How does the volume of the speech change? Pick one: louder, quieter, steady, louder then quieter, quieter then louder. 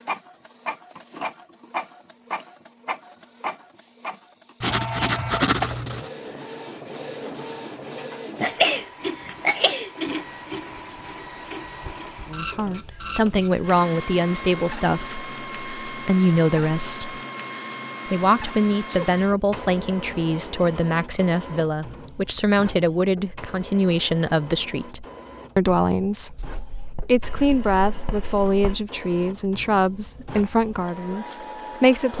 steady.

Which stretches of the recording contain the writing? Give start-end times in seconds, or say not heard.
4.6-6.1, 26.4-28.9.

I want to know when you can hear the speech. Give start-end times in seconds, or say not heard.
12.3-17.2, 18.1-32.1.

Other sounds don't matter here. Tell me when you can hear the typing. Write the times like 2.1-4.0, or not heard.
not heard.